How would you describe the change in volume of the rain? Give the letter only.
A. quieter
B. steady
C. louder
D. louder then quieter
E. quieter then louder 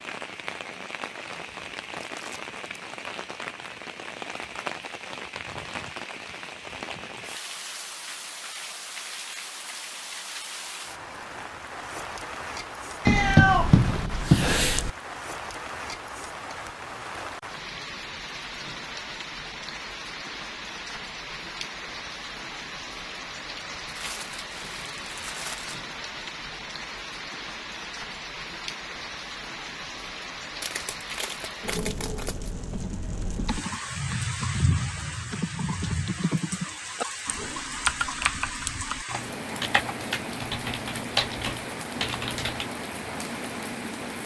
B.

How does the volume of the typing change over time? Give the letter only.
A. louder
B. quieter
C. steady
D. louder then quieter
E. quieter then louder
A.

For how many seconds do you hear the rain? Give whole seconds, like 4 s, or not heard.
44 s.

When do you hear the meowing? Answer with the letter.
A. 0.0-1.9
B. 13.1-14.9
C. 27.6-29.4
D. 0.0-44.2
B.